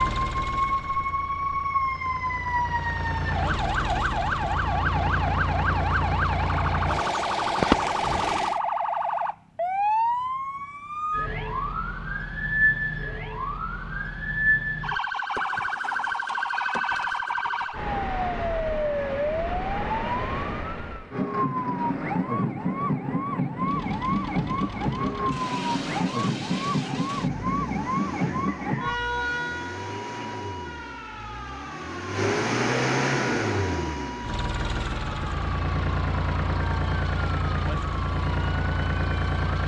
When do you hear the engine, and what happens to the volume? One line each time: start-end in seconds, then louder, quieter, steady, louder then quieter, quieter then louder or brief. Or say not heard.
0.0-8.6 louder
23.6-39.6 louder.